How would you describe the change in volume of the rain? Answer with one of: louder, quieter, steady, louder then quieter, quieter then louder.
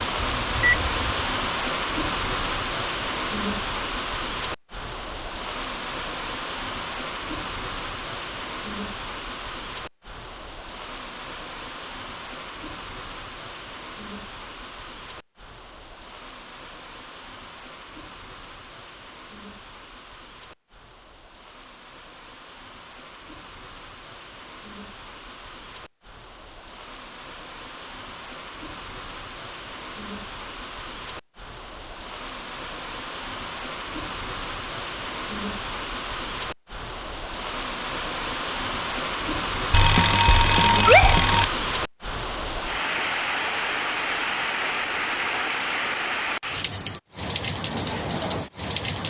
quieter then louder.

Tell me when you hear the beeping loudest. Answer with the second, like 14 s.
41 s.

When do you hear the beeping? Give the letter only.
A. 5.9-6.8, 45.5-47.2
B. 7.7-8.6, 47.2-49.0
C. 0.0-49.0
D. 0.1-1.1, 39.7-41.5
D.